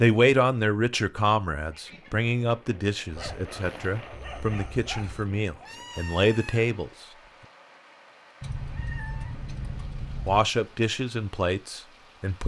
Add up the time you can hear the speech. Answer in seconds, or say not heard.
9 s.